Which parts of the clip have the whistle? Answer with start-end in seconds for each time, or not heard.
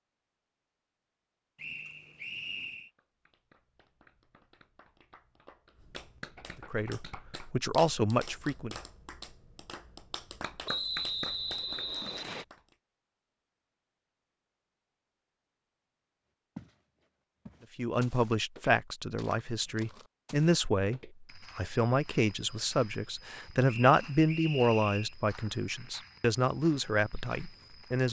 1.6-2.9, 10.7-12.4, 23.6-25.1.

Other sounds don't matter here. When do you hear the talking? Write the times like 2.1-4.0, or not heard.
6.7-8.8, 17.8-28.0.